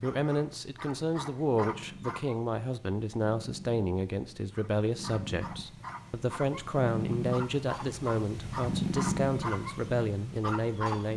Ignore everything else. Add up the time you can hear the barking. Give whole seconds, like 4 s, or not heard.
9 s.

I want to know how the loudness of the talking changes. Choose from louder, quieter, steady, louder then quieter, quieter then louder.
steady.